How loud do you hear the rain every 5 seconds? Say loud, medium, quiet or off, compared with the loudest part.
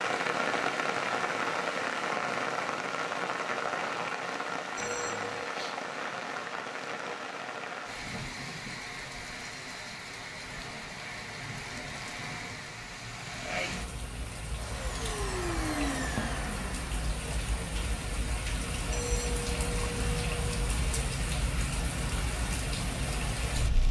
loud, medium, medium, medium, loud.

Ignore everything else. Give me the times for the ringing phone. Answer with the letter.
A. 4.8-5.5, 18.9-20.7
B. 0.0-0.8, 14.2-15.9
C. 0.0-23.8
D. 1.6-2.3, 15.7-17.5
A.